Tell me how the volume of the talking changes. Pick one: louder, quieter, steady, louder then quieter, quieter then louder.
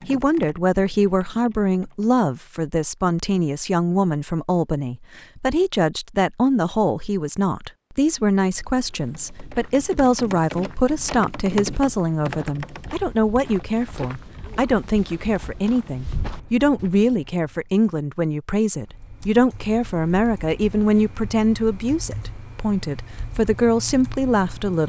steady.